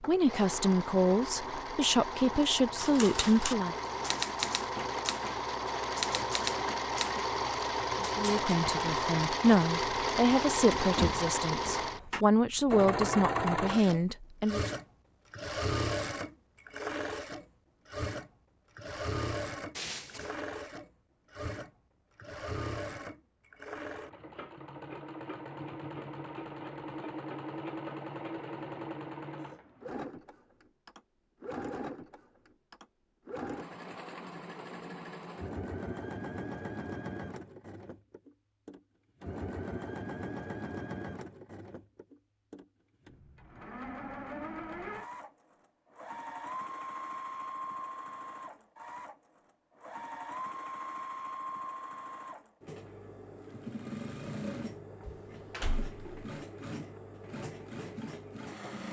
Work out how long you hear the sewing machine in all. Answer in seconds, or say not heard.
59 s.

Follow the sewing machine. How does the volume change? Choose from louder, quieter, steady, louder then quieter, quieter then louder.
quieter.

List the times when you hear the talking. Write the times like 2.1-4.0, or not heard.
0.1-3.8, 8.0-14.7.